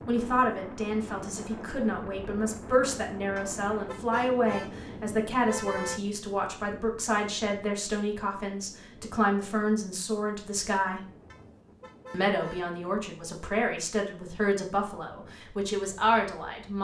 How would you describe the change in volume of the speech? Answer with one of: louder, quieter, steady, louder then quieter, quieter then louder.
steady.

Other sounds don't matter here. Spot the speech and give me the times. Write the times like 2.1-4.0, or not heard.
0.1-11.0, 12.1-16.7.